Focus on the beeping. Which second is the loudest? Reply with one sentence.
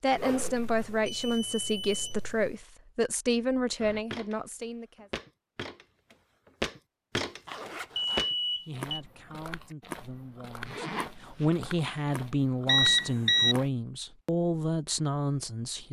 The volume of the beeping peaks at 13 seconds.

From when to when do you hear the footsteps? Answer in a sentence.
You can hear the footsteps from 3.8 to 13.7 s.